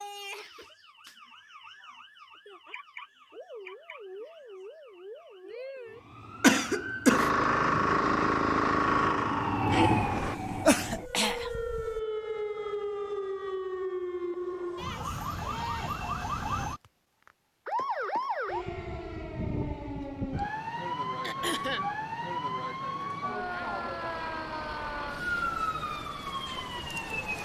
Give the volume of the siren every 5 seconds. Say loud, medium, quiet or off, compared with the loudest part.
quiet, loud, loud, loud, loud, loud.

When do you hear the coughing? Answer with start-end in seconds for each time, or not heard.
6.4-7.3, 10.1-12.0, 21.2-21.9.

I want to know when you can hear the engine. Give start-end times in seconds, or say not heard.
7.0-10.3.